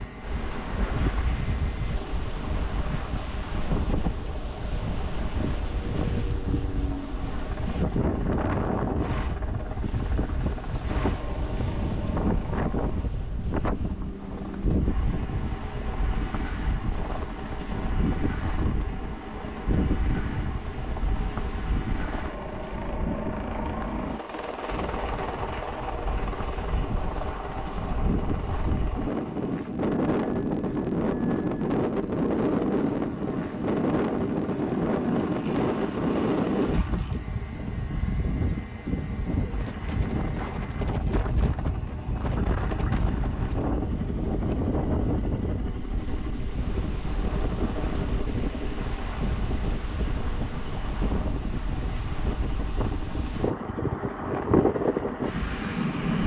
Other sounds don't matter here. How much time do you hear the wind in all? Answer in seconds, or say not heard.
56 s.